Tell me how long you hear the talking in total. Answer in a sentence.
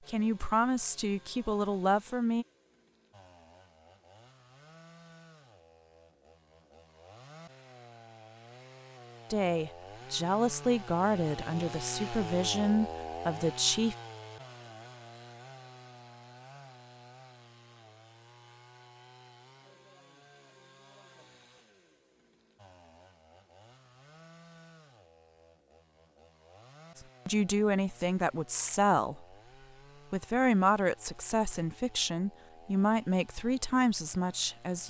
You can hear the talking for 14 seconds altogether.